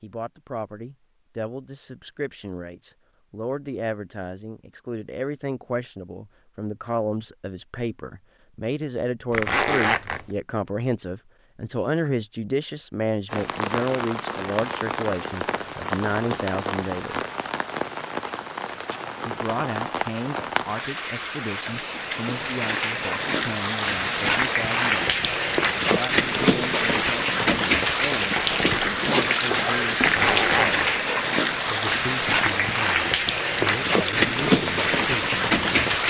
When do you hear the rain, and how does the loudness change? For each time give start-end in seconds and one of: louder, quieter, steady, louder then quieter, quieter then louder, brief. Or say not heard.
13.2-36.0 louder.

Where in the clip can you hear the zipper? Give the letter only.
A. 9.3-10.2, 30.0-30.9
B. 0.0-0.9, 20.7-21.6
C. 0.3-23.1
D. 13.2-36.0
A.